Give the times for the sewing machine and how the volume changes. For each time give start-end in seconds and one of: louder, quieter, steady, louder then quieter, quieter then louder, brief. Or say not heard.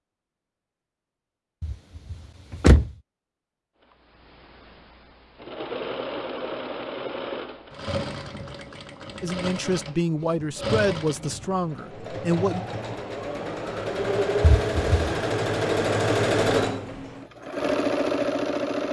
4.2-18.8 louder.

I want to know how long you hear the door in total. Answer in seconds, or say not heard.
2 s.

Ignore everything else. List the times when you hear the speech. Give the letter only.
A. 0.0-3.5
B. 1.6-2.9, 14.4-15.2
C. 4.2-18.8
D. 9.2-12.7
D.